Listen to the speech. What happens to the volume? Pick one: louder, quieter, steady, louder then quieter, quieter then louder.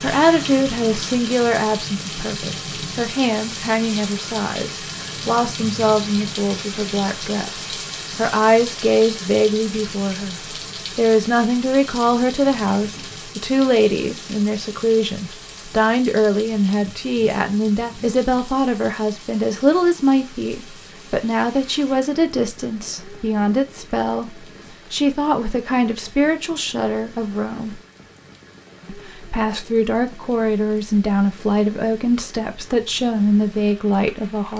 steady.